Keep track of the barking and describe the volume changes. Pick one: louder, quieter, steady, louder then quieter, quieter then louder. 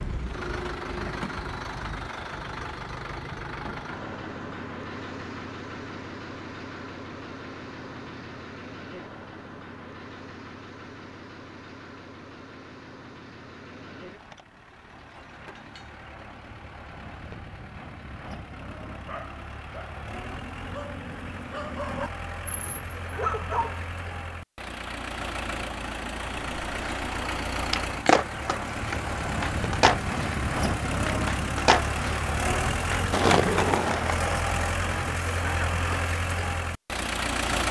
louder.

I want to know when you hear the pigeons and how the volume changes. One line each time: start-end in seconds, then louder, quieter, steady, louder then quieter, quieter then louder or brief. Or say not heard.
not heard.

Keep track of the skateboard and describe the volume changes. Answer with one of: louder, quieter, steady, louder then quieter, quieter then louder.
quieter then louder.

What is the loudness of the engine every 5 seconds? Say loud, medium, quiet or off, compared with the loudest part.
medium, medium, quiet, quiet, medium, loud, loud, loud.